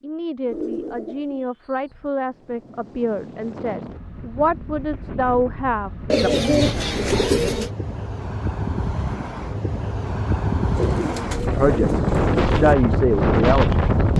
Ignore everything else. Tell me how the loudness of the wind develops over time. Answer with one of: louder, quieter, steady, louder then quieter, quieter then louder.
louder.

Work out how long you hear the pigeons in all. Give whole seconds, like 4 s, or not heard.
5 s.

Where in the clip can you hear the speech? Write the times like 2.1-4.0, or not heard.
0.0-6.9, 11.6-14.1.